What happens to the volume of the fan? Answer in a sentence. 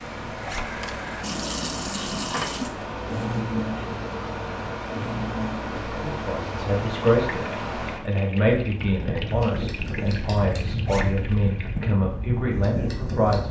The volume of the fan stays about the same.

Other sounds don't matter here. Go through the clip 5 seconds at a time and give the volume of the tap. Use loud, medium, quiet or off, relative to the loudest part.
loud, loud, medium.